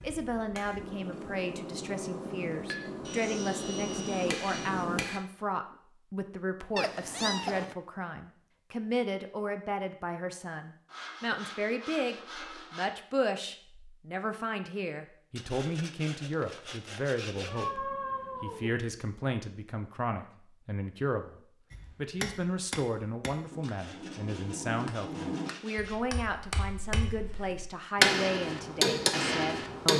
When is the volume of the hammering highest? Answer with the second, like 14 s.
28 s.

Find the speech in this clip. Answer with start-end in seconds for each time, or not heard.
0.0-29.9.